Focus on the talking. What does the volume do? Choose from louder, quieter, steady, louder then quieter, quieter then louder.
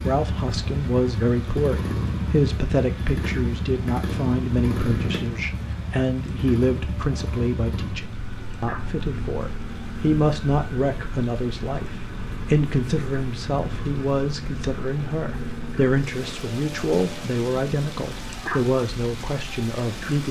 steady.